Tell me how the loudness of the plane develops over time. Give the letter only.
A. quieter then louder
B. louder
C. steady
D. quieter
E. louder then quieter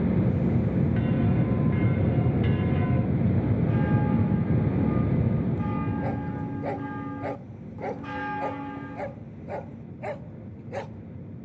D.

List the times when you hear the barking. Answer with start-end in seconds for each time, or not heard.
6.0-10.9.